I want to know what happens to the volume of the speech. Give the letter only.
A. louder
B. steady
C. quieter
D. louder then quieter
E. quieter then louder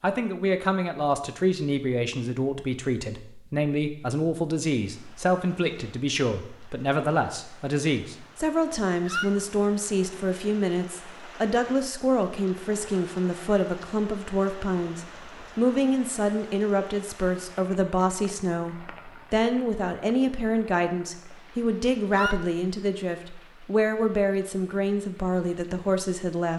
B.